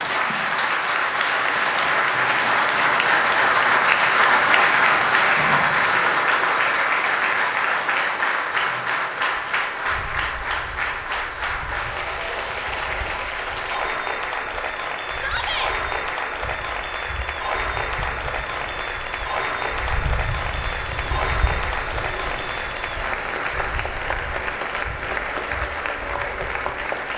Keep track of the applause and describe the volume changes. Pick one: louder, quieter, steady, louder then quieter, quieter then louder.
quieter.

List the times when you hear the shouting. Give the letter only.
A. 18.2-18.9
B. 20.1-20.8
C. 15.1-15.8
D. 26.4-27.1
C.